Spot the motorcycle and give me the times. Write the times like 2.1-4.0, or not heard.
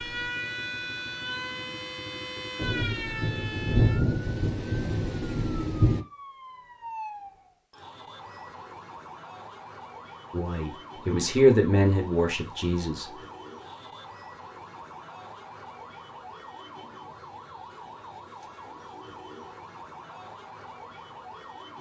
0.0-6.0.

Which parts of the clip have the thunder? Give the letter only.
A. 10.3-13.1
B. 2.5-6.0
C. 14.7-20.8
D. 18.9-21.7
B.